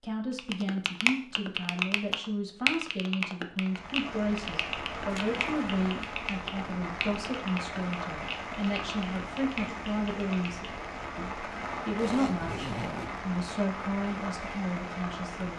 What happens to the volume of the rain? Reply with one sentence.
The volume of the rain stays about the same.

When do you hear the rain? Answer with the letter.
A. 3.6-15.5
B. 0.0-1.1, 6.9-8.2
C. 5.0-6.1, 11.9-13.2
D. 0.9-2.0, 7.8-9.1
A.